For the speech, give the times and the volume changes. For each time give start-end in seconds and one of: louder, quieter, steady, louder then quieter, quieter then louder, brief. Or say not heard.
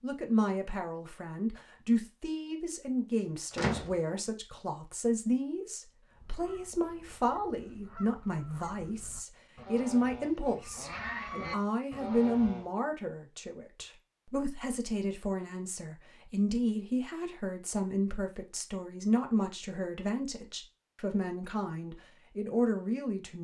0.0-23.3 steady.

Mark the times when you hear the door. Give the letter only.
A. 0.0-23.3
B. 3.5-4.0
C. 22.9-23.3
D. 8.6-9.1
B.